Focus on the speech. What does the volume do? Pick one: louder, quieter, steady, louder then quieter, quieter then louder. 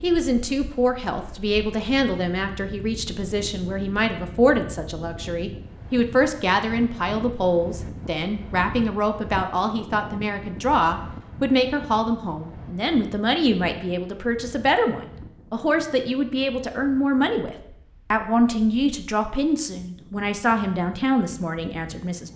steady.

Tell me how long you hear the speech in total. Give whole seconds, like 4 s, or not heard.
22 s.